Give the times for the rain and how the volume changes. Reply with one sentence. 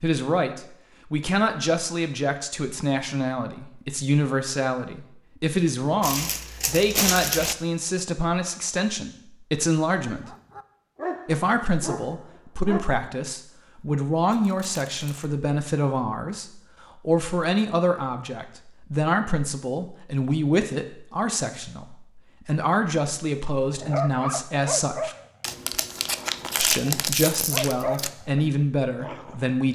The rain can't be heard in this clip.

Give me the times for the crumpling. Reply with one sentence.
You can hear the crumpling from 6.0 to 7.5 s, from 14.6 to 15.3 s and from 25.4 to 28.1 s.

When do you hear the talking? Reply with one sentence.
The talking can be heard from 0.0 to 10.3 s, from 11.2 to 25.1 s and from 26.6 to 29.7 s.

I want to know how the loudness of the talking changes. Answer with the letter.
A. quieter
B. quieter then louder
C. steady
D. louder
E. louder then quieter
C.